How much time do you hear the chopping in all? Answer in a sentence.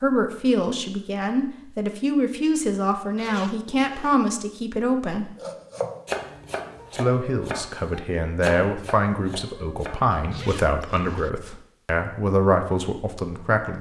The chopping can be heard for 5 seconds in total.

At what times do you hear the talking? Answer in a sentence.
You can hear the talking from 0.0 to 5.3 s and from 6.9 to 13.7 s.